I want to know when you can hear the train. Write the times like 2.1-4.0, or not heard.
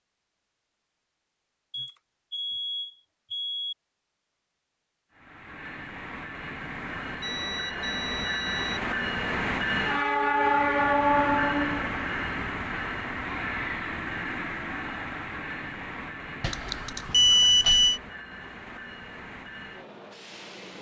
5.1-20.7.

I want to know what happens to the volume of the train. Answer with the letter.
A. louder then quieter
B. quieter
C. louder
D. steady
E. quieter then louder
A.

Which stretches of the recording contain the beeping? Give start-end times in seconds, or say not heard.
1.7-3.8, 7.2-8.8, 16.4-18.0.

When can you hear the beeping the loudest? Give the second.
17 s.